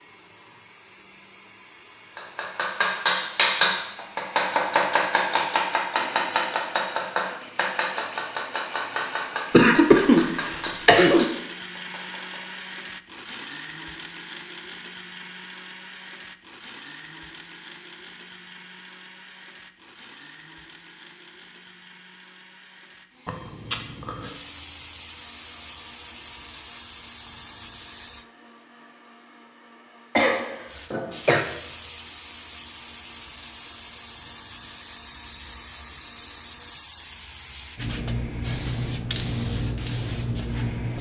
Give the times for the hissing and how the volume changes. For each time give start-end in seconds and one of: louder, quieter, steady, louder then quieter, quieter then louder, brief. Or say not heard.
24.2-28.3 steady
30.6-40.9 louder.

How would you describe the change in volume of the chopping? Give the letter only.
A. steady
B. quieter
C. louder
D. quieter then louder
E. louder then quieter
B.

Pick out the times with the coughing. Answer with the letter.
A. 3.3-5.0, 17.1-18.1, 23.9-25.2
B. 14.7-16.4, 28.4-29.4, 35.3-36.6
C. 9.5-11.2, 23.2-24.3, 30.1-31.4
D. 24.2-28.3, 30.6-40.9
C.